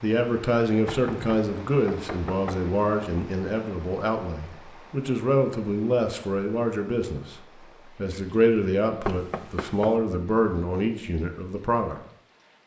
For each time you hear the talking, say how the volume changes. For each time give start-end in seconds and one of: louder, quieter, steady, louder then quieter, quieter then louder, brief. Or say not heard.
0.0-12.0 steady.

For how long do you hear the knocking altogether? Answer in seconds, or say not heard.
3 s.